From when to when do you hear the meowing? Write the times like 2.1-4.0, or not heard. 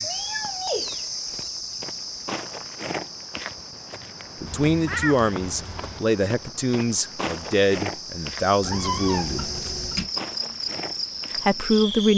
0.0-1.5, 4.5-6.0, 8.6-10.1.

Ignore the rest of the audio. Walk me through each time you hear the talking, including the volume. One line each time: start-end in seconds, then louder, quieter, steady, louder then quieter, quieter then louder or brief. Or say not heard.
4.4-9.5 steady
11.3-12.1 brief.